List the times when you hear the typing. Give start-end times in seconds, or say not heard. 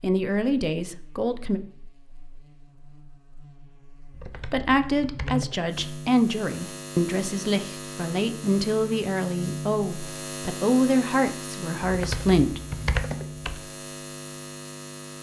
4.1-6.0, 11.8-13.6.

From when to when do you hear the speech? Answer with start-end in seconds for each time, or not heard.
0.0-1.6, 4.5-12.6.